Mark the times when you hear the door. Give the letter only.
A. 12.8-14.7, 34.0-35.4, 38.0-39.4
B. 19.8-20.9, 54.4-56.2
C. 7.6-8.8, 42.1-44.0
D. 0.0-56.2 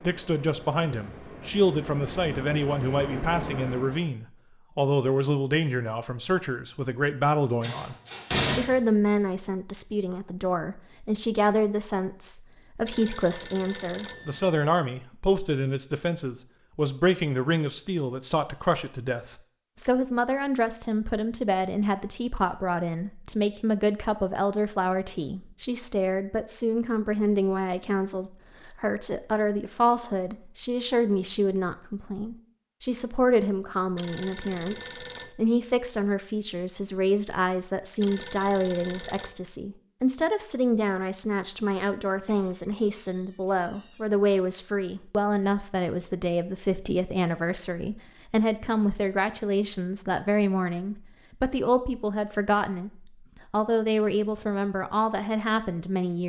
C.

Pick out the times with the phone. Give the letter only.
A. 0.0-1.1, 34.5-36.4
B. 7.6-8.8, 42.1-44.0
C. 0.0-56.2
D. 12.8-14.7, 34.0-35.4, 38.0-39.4
D.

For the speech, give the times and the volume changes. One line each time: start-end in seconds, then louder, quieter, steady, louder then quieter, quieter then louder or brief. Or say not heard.
0.0-56.2 steady.